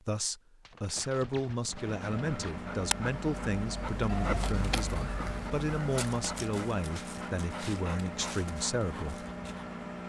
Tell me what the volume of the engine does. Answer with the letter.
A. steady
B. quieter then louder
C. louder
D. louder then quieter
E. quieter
A.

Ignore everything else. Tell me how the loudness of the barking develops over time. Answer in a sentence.
The volume of the barking goes down.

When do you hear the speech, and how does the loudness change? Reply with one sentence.
You can hear the speech from 0.1 to 9.2 s, at a steady volume.